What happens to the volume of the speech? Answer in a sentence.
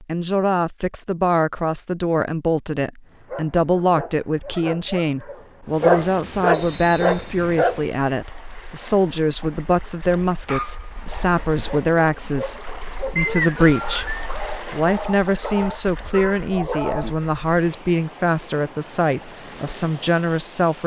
The volume of the speech stays about the same.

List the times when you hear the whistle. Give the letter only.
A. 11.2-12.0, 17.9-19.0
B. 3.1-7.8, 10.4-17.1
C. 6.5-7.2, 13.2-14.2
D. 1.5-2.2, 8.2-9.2
C.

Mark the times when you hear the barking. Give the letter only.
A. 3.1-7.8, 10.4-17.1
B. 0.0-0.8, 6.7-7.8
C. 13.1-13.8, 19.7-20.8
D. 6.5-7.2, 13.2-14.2
A.